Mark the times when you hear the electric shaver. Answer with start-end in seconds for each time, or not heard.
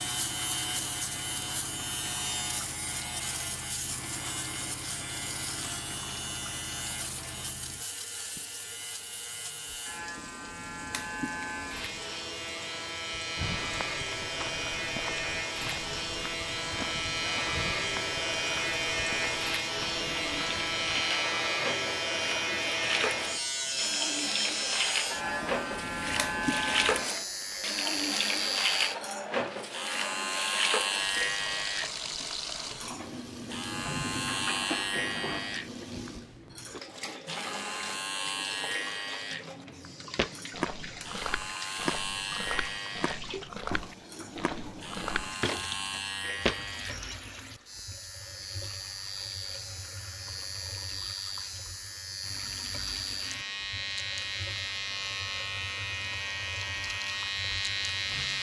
0.0-58.3.